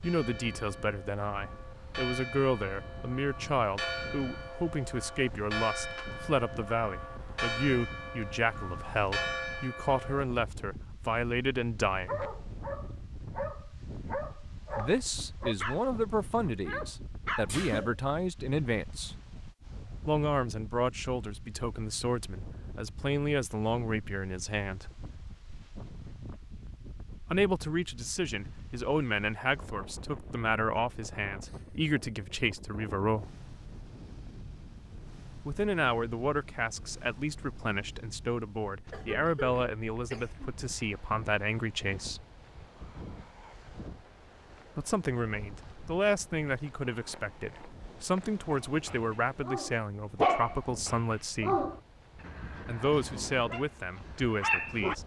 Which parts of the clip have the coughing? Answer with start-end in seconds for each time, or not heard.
17.4-17.9, 38.9-40.5.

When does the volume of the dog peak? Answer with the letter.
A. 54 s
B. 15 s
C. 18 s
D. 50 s
D.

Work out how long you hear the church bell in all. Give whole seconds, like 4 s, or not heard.
10 s.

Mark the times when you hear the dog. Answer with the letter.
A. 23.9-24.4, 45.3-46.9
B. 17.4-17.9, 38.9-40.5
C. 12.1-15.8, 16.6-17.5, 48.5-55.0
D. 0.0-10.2
C.